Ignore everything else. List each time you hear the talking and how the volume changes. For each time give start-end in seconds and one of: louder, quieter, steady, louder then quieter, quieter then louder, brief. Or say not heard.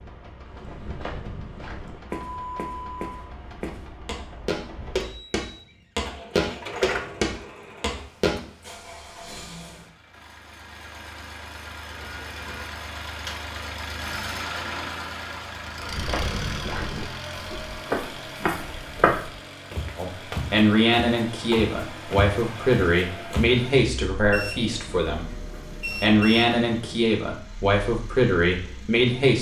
19.9-29.3 steady.